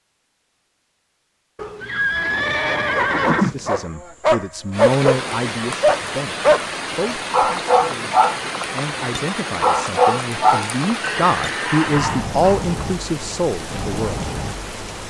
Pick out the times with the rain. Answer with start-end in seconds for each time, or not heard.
4.7-15.0.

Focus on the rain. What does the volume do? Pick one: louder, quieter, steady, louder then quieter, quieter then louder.
steady.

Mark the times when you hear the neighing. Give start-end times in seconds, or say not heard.
1.6-3.8, 11.0-12.1.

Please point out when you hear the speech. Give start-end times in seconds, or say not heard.
3.2-6.3, 7.0-14.2.